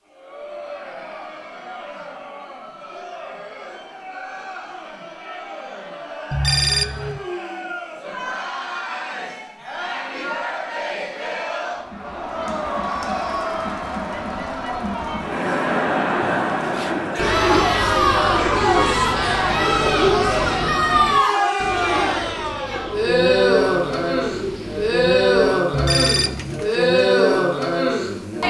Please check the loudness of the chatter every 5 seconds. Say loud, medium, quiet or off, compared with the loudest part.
quiet, quiet, medium, loud, loud, loud.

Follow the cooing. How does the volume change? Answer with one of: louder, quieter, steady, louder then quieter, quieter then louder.
quieter.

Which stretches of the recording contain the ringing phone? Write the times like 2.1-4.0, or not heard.
6.3-7.2, 25.7-26.6.